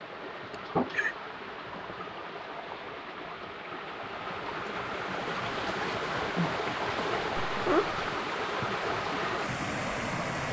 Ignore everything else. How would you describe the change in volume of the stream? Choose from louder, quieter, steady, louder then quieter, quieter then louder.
louder.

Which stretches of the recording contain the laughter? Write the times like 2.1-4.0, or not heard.
0.5-1.1, 7.5-8.3.